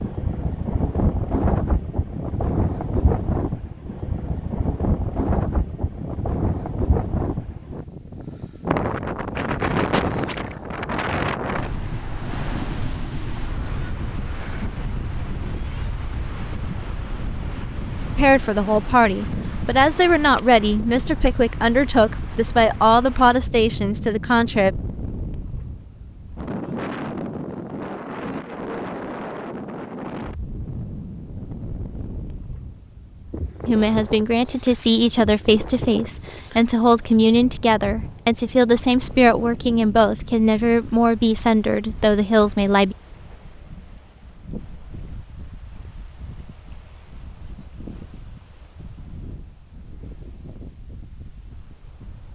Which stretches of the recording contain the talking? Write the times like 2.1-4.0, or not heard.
18.1-24.7, 33.6-43.0.